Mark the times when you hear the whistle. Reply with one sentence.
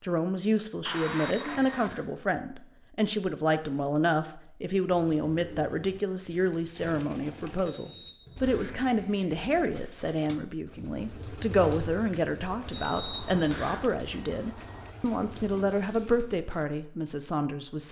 You can hear the whistle from 0.9 to 2.0 s, from 7.7 to 8.8 s and from 12.7 to 13.8 s.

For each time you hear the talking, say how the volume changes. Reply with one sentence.
The talking can be heard from 0.0 to 17.8 s, at a steady volume.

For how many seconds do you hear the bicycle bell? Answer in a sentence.
You can hear the bicycle bell for 3 seconds altogether.